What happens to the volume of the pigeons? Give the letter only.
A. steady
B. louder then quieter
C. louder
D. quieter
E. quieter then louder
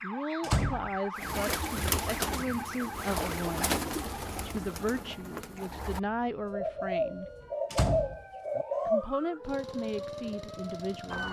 E.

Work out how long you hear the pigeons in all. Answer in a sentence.
The pigeons can be heard for 8 seconds in total.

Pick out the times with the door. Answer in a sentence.
You can hear the door from 0.4 to 1.4 s and from 7.7 to 8.7 s.